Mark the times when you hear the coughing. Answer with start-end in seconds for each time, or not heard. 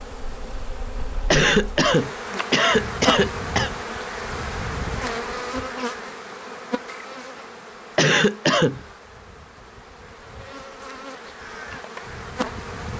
1.3-3.8, 8.0-8.8.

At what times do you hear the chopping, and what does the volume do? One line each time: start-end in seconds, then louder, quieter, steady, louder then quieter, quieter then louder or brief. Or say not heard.
not heard.